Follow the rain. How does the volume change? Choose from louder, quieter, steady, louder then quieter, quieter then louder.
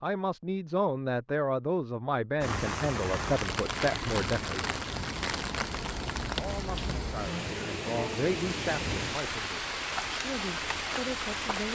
steady.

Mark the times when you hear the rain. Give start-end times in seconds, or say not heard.
2.4-11.6.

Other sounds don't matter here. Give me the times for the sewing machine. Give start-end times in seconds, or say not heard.
not heard.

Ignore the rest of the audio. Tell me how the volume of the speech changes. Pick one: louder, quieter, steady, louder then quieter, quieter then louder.
quieter.